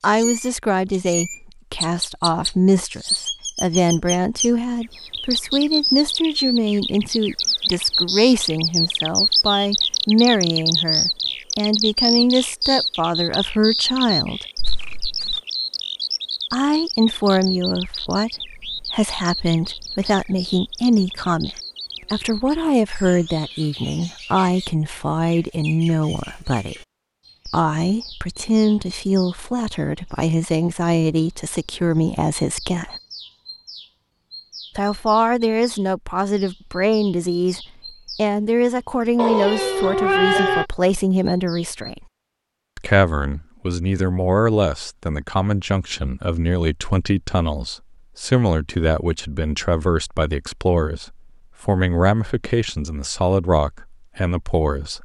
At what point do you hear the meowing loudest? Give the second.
40 s.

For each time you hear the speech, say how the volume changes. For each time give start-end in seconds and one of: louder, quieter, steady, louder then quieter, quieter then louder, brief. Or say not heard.
0.0-14.4 steady
16.5-26.9 steady
27.4-33.0 steady
34.8-42.0 steady
42.8-54.9 steady.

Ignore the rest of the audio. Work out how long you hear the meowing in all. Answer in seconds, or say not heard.
2 s.